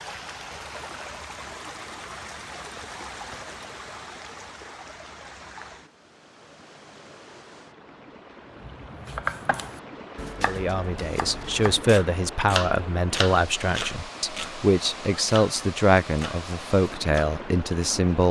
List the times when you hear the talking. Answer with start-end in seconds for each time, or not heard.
10.4-18.2.